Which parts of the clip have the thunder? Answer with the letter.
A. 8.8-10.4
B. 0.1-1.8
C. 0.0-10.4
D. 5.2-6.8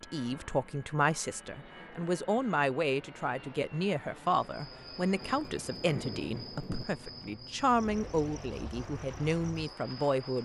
D.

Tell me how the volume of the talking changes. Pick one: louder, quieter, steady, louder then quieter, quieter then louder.
steady.